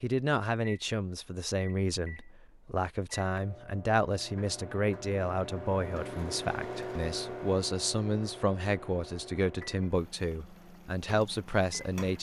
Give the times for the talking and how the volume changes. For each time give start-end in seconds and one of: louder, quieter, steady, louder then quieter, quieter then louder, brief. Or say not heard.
0.0-12.1 steady.